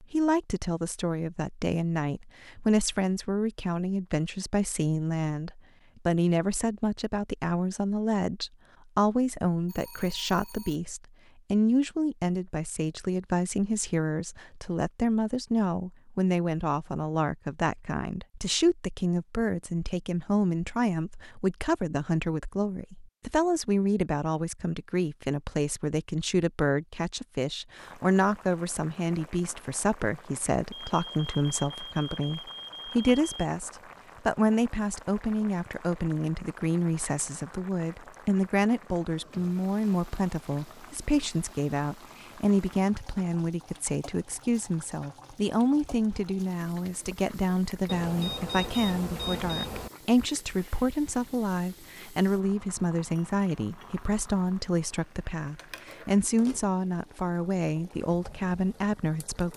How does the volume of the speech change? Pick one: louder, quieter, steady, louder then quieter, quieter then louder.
steady.